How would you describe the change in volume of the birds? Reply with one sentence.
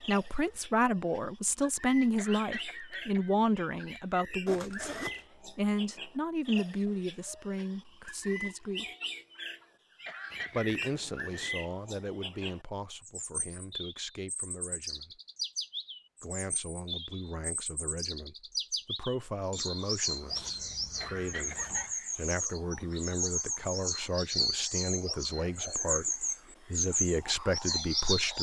The loudness of the birds goes up.